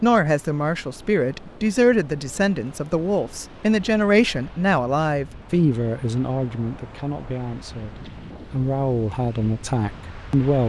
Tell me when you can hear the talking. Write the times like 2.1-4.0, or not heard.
0.0-10.6.